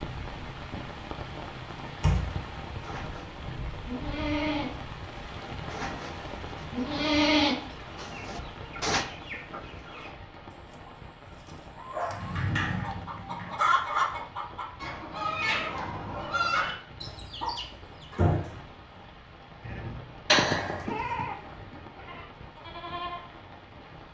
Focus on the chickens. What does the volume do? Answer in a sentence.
The loudness of the chickens goes up.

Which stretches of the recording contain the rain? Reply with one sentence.
The rain can be heard from 0.0 to 24.0 s.